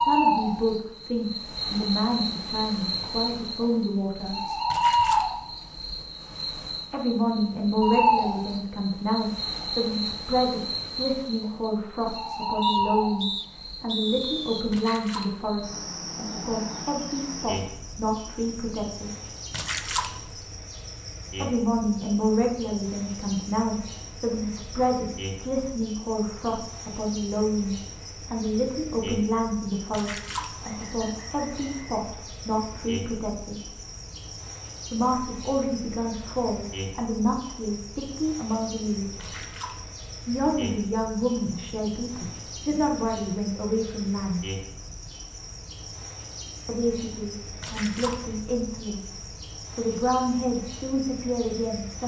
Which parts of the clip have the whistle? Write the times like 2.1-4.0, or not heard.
12.6-14.7, 30.6-32.1.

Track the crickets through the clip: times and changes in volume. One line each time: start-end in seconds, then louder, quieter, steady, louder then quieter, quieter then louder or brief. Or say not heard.
0.0-52.0 quieter.